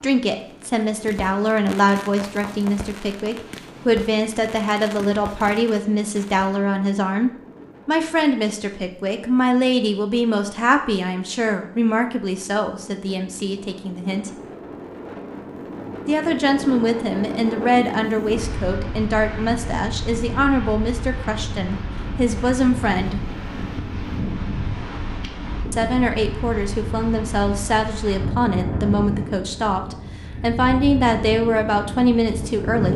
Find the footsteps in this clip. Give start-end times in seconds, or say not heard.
not heard.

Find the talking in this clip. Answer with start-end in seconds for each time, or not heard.
0.0-14.3, 16.1-23.2, 25.7-32.9.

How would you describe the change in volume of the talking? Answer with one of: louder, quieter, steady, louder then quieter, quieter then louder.
steady.